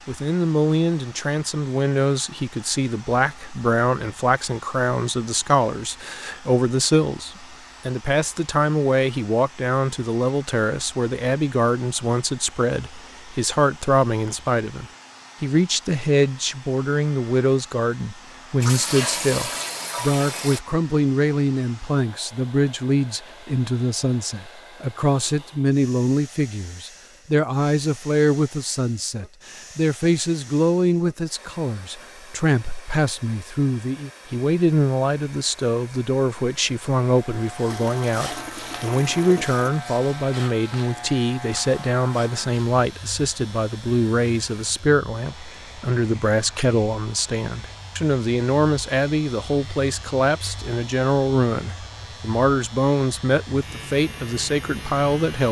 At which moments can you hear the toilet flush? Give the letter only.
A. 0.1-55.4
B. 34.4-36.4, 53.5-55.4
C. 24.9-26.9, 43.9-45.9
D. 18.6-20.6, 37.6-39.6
D.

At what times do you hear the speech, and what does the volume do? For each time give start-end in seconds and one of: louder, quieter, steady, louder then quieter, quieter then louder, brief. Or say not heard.
0.1-55.4 steady.